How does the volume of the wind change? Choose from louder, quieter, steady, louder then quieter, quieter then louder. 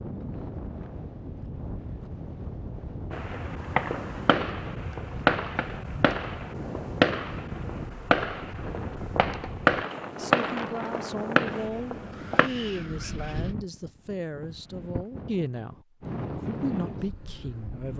steady.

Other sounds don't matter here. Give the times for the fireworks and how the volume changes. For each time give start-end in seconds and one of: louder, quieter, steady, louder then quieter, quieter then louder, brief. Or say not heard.
3.1-12.5 louder then quieter.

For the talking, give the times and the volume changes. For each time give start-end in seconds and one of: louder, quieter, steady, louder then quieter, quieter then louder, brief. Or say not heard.
10.2-15.8 steady
16.4-17.9 brief.